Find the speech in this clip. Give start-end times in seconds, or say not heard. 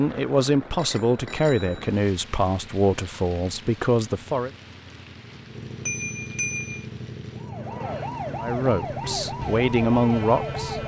0.0-4.5, 8.4-10.8.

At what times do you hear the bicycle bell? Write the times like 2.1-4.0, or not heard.
0.8-1.9, 5.8-6.8.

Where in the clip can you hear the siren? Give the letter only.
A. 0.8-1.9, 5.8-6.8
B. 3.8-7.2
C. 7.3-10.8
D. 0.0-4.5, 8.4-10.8
C.